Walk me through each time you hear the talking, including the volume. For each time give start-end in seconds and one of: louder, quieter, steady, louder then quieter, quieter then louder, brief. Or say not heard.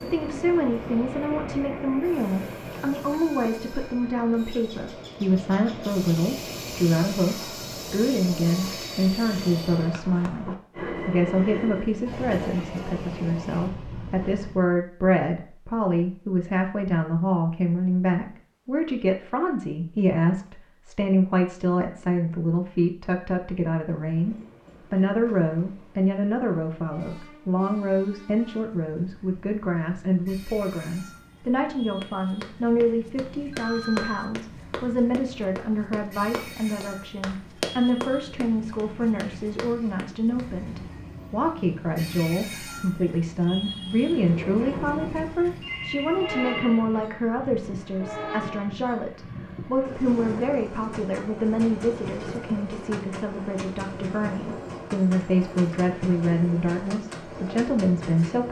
0.0-58.4 steady.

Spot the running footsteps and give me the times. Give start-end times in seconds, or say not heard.
32.0-40.5.